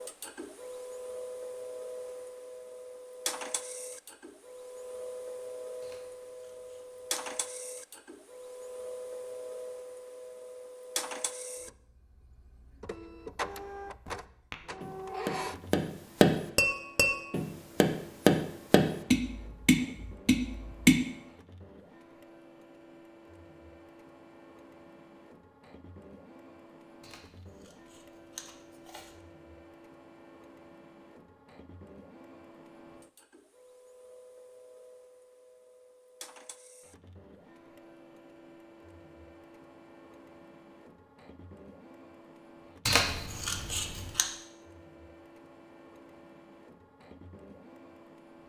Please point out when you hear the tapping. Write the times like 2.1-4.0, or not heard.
14.5-21.1.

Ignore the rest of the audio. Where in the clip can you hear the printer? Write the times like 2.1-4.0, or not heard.
0.0-48.4.